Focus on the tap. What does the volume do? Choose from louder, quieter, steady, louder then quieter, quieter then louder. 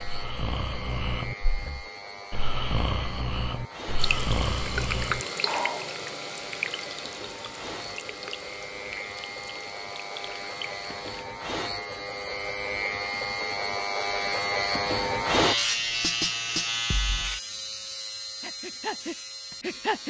quieter.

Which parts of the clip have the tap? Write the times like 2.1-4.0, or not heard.
4.0-11.2.